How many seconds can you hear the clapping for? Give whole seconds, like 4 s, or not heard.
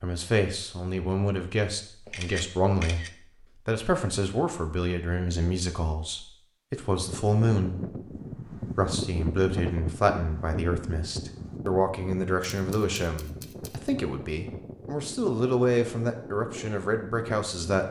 not heard.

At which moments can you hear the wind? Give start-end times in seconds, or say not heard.
7.0-17.8.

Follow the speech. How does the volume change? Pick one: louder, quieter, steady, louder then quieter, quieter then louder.
steady.